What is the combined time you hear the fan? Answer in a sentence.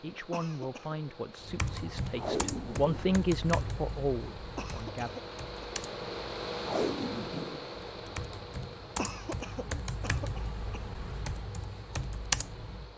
You can hear the fan for 13 seconds altogether.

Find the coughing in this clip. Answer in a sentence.
The coughing can be heard from 0.3 to 0.9 s, from 4.5 to 5.7 s and from 8.9 to 10.8 s.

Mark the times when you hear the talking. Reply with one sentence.
You can hear the talking from 0.0 to 5.2 s.